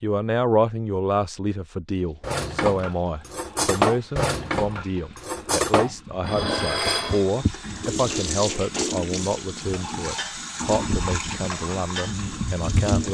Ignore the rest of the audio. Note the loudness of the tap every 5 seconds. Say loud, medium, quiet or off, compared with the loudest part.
quiet, loud, loud.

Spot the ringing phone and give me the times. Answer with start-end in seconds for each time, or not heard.
not heard.